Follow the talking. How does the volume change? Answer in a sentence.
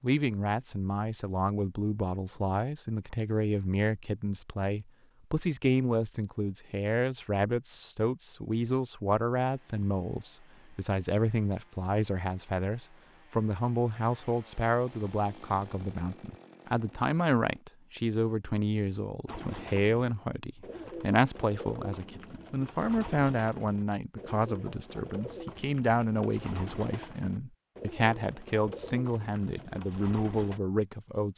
The volume of the talking stays about the same.